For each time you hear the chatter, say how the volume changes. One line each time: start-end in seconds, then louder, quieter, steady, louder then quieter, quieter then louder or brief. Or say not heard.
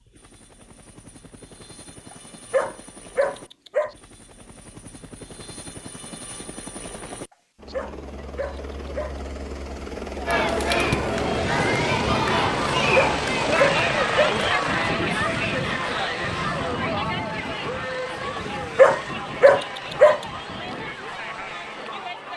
10.2-22.3 quieter.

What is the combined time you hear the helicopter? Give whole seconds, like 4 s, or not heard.
22 s.